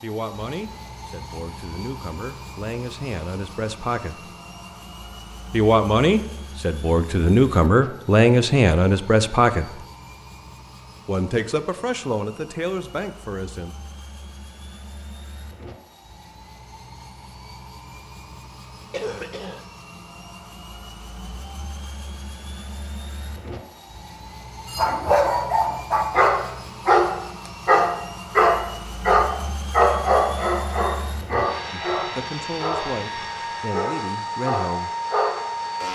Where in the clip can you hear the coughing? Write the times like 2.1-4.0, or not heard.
18.9-19.6.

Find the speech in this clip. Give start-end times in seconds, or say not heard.
0.0-4.3, 5.5-9.8, 11.1-13.8, 31.7-34.9.